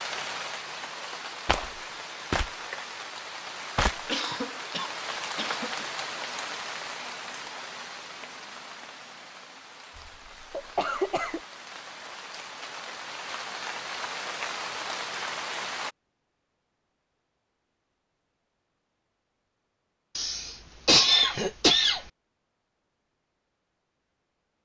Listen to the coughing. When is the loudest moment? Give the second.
21 s.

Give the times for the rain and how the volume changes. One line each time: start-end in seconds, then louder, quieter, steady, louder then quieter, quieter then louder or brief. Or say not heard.
0.0-15.9 quieter then louder.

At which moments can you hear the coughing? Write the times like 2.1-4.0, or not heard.
4.0-5.8, 9.9-11.4, 20.1-22.1.